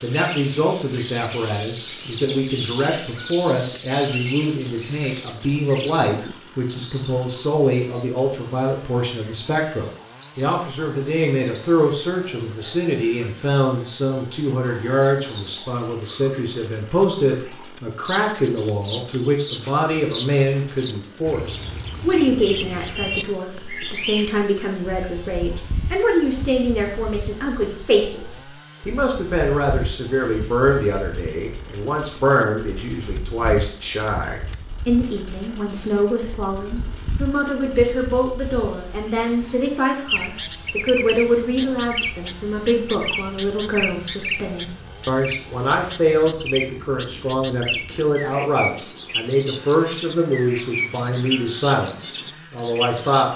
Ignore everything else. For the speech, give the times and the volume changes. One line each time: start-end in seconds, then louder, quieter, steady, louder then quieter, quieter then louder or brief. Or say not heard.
0.0-53.3 steady.